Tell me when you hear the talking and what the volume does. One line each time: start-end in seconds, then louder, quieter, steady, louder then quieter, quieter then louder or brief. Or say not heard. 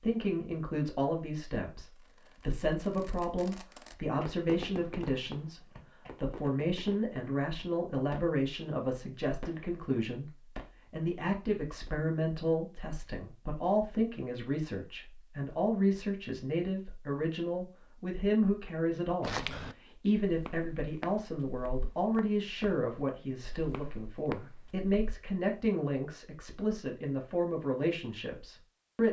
0.0-29.0 steady.